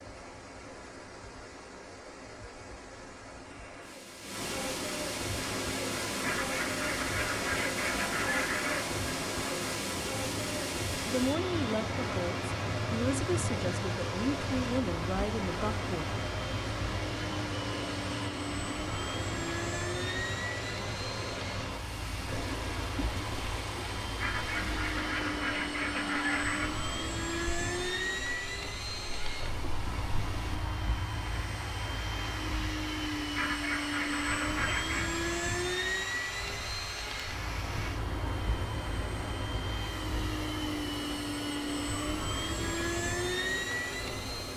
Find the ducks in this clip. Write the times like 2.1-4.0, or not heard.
6.2-8.9, 24.2-26.7, 33.4-35.1.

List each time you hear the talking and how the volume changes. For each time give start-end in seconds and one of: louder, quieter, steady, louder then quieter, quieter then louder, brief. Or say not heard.
11.1-16.1 steady.